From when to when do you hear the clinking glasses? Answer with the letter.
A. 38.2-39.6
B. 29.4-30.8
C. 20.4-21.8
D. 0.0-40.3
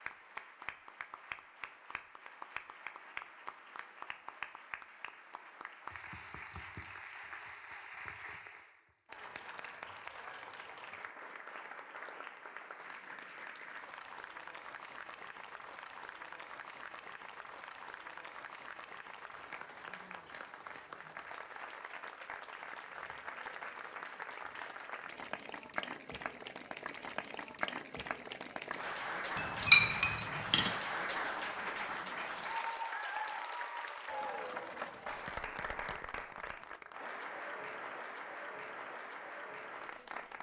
B.